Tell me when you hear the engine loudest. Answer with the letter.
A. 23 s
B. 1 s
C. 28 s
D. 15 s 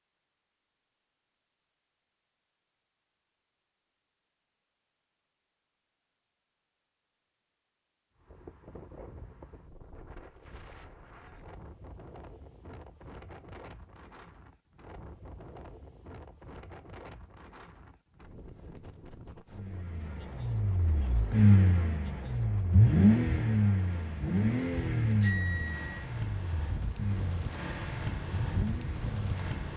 A.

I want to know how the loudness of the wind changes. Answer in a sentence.
The loudness of the wind goes up.